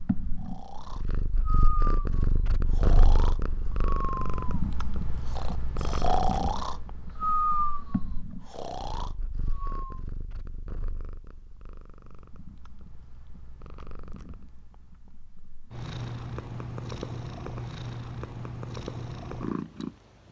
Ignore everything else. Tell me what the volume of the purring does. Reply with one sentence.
The loudness of the purring goes down, then up.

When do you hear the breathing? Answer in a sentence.
You can hear the breathing from 0.3 to 10.0 s.